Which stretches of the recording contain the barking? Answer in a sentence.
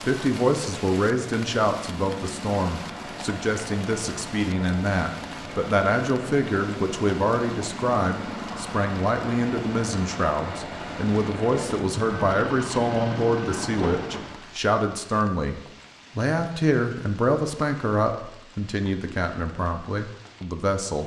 You can hear the barking from 13.8 to 14.2 s.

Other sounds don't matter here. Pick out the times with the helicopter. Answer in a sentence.
You can hear the helicopter from 0.0 to 14.4 s.